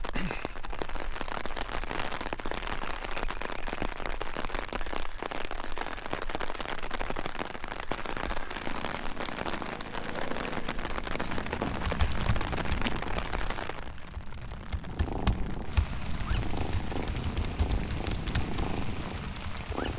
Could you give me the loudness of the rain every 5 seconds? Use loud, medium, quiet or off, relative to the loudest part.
loud, loud, loud, medium.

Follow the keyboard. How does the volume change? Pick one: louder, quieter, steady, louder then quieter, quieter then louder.
quieter then louder.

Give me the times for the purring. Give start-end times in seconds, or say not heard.
8.4-13.2, 14.8-19.9.